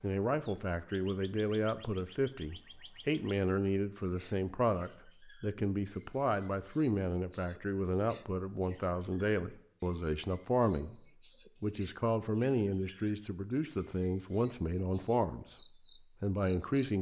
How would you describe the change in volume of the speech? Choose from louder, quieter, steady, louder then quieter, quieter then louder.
steady.